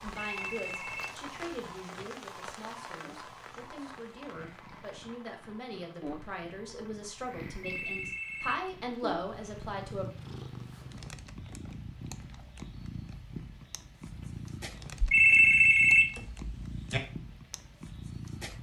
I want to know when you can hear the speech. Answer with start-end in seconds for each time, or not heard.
0.0-10.1.